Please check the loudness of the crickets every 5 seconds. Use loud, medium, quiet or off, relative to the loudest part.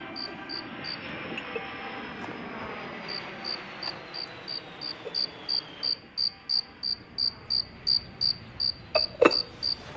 quiet, loud.